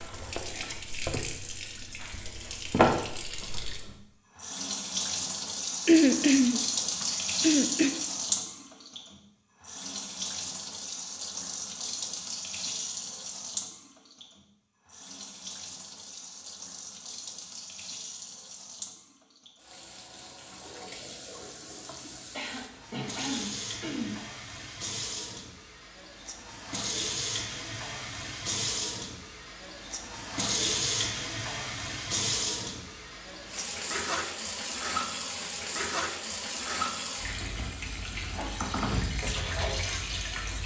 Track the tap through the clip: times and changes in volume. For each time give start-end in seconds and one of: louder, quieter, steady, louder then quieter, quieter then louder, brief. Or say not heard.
0.0-40.6 quieter then louder.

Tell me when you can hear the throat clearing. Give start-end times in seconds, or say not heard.
5.8-7.9, 21.9-24.2.